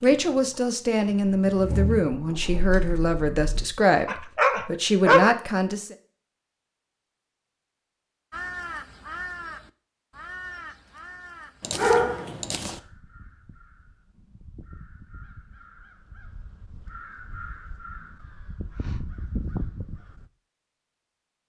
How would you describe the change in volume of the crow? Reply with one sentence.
The volume of the crow goes down, then up.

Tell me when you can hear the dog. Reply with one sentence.
You can hear the dog from 4.0 to 5.3 s and from 11.6 to 12.8 s.